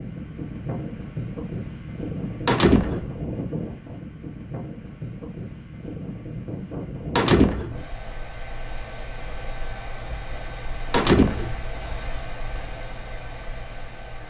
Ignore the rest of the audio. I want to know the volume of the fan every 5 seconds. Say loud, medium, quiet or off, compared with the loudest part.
loud, loud, medium.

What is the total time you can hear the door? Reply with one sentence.
You can hear the door for 2 seconds altogether.